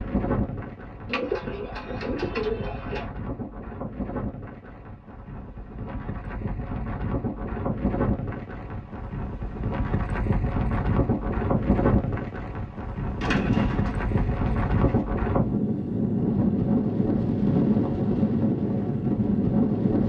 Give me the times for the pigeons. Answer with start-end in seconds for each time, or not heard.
1.1-3.0, 13.2-15.0.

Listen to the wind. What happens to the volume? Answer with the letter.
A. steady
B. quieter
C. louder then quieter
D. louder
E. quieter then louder
D.